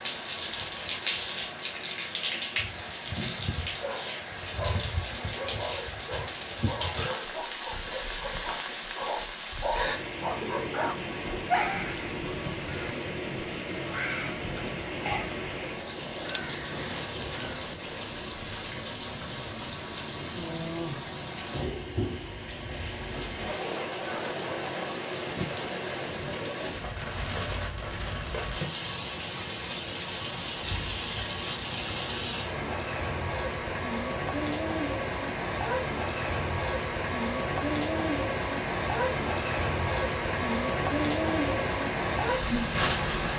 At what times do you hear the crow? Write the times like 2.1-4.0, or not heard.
10.7-17.5.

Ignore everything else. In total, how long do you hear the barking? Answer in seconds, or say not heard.
8 s.